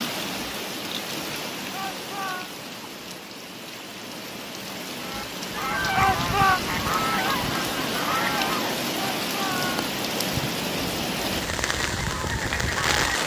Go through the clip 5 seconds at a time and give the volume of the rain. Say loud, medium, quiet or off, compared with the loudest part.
medium, loud, loud.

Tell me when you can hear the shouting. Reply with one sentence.
You can hear the shouting from 1.7 to 2.5 s, from 5.9 to 6.6 s and from 8.9 to 9.9 s.